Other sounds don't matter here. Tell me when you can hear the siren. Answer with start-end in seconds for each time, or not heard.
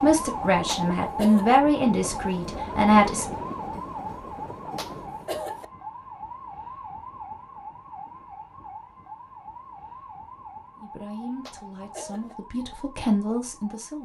0.0-13.9.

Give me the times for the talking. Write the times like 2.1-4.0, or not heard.
0.0-3.2, 10.8-13.9.